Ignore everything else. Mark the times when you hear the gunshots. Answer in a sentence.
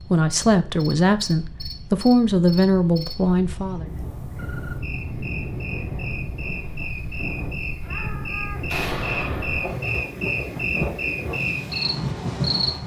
You can hear the gunshots from 8.7 to 9.8 s.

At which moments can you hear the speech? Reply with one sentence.
You can hear the speech from 0.1 to 3.9 s.